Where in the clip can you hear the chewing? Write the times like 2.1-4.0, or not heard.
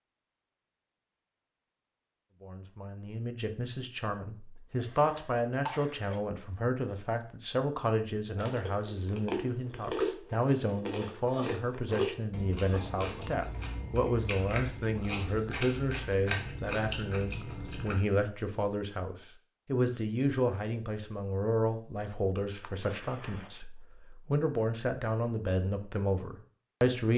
8.3-17.9.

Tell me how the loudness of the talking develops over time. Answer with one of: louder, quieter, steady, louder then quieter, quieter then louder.
steady.